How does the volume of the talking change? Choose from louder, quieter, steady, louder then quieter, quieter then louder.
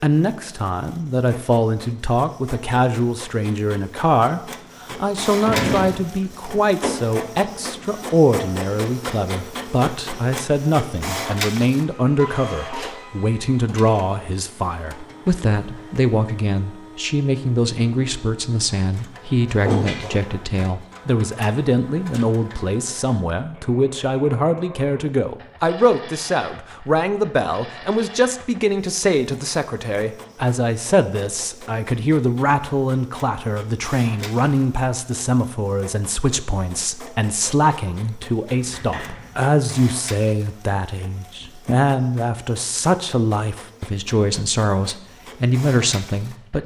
steady.